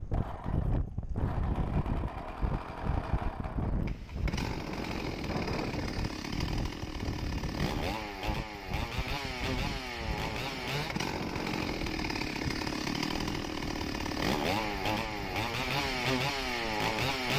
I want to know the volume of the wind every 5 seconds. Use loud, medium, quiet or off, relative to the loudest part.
loud, loud, medium, medium.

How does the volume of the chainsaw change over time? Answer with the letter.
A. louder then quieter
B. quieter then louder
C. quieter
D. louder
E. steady
D.